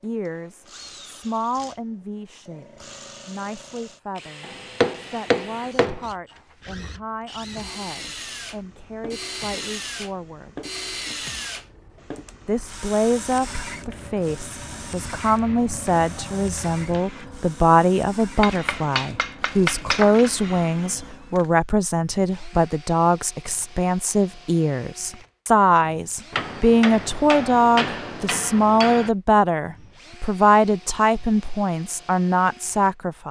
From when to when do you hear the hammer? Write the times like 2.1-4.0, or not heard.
4.4-6.0, 18.4-20.4, 26.3-29.1.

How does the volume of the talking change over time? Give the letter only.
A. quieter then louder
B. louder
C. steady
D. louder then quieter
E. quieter
B.